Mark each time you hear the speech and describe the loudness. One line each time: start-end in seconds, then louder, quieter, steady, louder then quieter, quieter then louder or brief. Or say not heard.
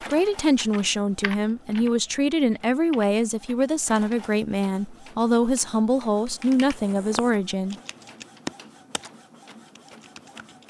0.1-7.8 steady.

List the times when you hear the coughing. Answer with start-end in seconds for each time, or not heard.
not heard.